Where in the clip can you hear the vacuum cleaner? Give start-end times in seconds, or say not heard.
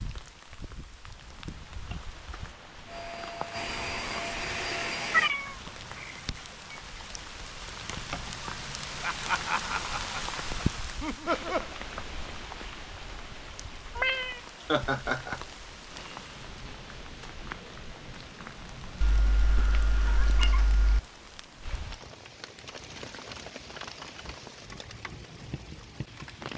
2.9-5.3.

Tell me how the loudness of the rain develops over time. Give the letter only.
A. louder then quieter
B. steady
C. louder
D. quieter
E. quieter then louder
A.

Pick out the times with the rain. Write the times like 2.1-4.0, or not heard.
0.0-26.5.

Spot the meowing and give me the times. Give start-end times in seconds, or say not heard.
5.1-6.2, 13.9-14.4, 19.0-21.0.